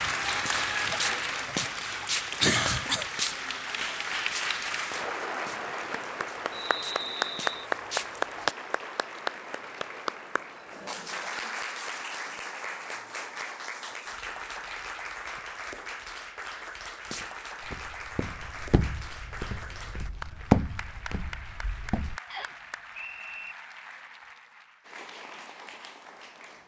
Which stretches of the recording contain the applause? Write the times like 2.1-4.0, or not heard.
0.0-26.6.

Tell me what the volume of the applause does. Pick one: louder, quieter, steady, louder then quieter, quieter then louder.
quieter.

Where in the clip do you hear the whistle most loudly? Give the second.
7 s.